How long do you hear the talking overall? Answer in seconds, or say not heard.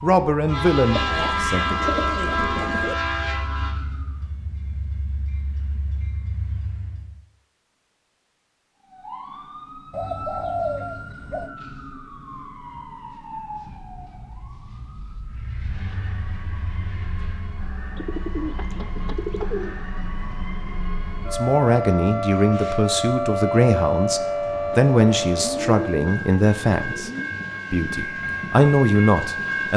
10 s.